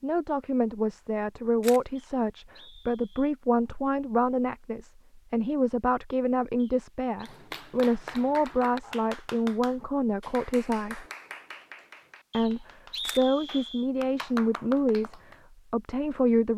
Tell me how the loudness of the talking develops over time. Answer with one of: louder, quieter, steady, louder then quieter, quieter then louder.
steady.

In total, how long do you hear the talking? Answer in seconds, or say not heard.
15 s.